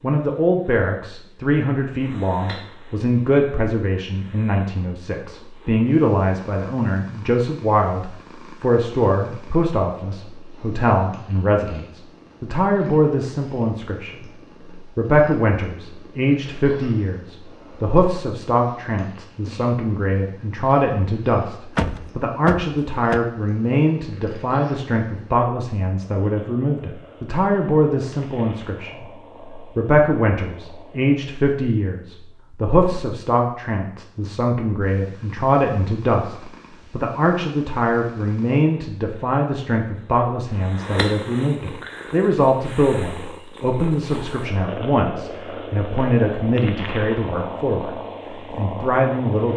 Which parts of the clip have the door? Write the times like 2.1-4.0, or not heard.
21.8-23.2.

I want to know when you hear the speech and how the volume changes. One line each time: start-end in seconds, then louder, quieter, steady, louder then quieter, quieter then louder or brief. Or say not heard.
0.0-49.5 steady.